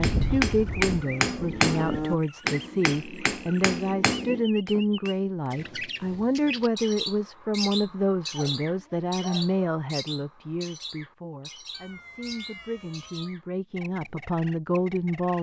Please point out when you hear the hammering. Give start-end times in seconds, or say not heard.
0.0-5.3.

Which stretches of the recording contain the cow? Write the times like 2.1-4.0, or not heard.
0.0-2.2.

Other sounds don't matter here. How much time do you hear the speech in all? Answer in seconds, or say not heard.
15 s.